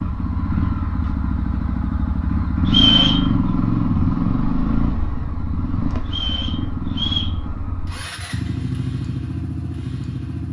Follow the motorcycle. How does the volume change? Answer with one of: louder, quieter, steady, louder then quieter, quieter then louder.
louder then quieter.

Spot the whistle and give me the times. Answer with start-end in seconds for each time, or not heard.
2.6-3.2, 6.0-7.3.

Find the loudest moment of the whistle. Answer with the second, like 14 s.
3 s.